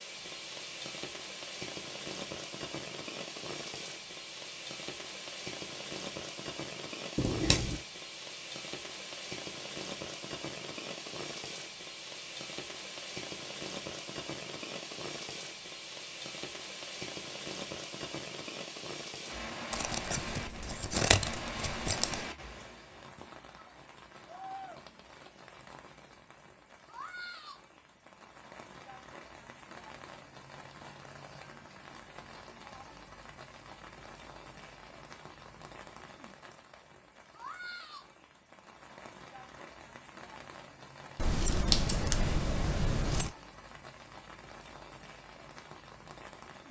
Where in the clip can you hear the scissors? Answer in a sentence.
You can hear the scissors from 7.2 to 7.8 s, from 19.7 to 22.2 s and from 41.1 to 43.4 s.